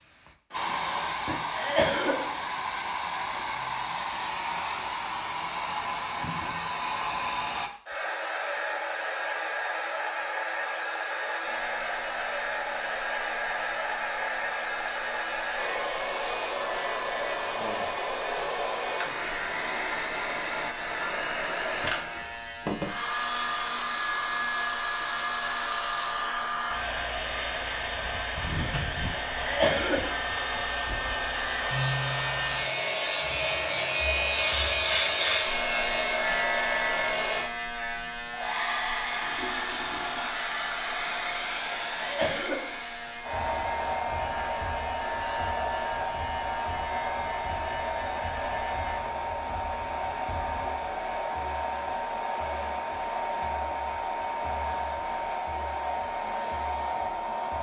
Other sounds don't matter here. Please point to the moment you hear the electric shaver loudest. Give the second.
35 s.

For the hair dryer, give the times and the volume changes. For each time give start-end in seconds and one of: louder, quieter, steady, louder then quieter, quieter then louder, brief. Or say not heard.
0.0-57.5 steady.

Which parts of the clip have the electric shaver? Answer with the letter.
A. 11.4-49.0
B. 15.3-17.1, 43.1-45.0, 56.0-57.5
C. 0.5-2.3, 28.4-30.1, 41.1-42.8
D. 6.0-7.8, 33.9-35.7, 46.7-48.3
A.